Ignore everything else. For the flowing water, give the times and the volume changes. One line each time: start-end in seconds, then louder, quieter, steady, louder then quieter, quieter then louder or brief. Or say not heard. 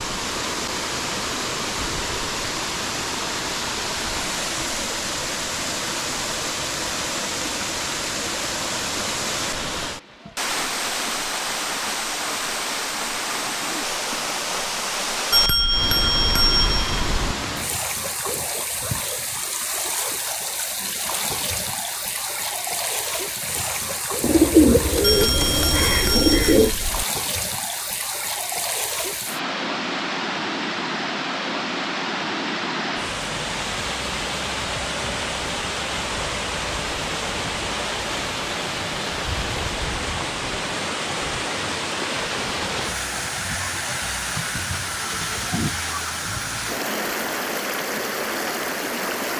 0.0-49.3 steady.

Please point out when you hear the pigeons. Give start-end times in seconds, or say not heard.
24.2-26.8.